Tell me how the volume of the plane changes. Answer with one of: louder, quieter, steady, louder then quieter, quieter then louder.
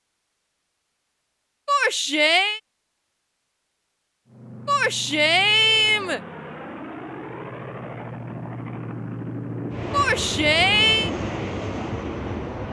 louder.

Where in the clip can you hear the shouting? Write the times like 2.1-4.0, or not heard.
1.6-2.6, 4.7-6.2, 9.9-11.1.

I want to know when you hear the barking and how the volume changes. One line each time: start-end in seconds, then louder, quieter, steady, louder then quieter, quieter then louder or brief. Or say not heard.
not heard.